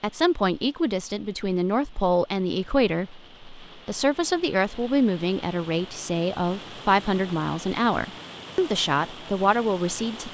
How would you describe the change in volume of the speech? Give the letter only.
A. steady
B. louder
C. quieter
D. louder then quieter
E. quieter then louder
A.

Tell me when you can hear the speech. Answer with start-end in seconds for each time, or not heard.
0.0-10.2.